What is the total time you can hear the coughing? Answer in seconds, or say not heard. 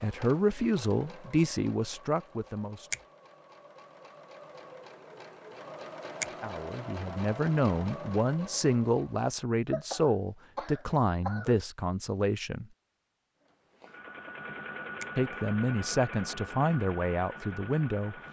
2 s.